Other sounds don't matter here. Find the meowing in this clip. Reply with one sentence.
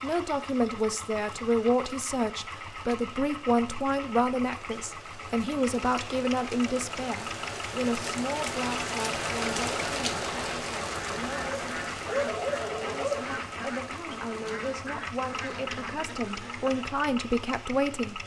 The meowing can't be heard in this clip.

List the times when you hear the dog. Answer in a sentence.
You can hear the dog from 11.4 to 13.2 s.